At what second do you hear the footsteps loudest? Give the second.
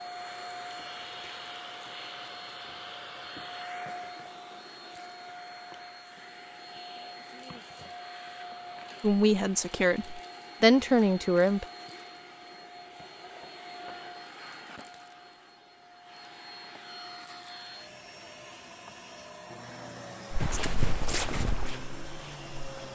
21 s.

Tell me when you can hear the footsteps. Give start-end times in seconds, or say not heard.
20.3-22.9.